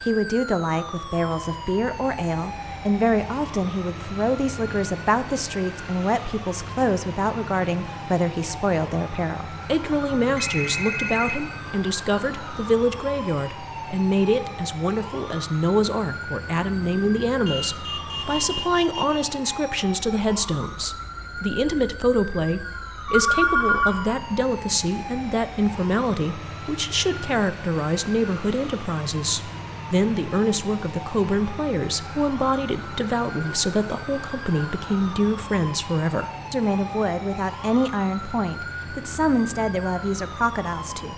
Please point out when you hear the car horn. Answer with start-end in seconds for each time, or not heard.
17.4-19.2.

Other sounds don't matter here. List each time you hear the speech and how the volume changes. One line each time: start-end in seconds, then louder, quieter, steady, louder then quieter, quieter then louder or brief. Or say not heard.
0.1-41.1 steady.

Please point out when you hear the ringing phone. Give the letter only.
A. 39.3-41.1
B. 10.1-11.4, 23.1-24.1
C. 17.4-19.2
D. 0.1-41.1
B.